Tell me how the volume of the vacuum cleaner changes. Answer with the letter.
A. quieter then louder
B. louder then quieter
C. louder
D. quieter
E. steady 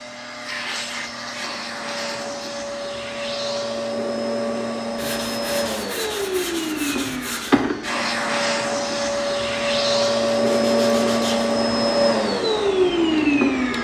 C.